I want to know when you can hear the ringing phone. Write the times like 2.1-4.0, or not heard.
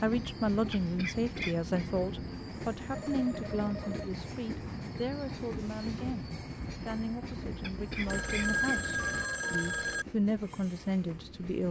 2.9-4.2, 8.1-10.1.